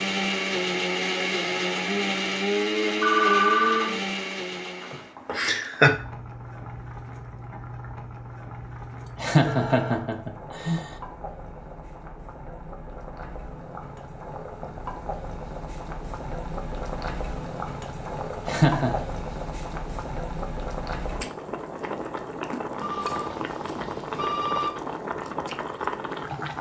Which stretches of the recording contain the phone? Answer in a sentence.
You can hear the phone from 3.0 to 4.0 s, from 9.4 to 10.1 s and from 22.8 to 24.7 s.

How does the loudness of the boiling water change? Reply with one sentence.
The loudness of the boiling water goes up.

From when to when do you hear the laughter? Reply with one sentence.
You can hear the laughter from 4.9 to 6.0 s, from 9.1 to 10.9 s and from 18.3 to 19.1 s.